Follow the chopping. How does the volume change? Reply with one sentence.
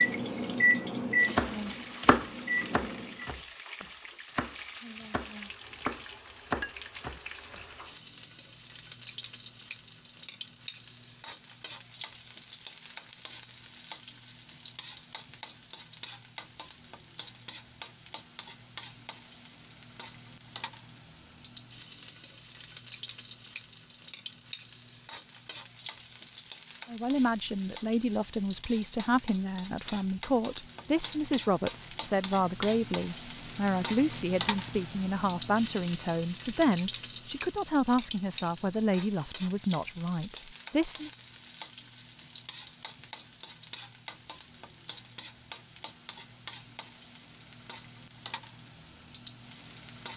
The loudness of the chopping goes down, then up.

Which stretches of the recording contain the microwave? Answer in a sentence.
You can hear the microwave from 0.0 to 3.2 s.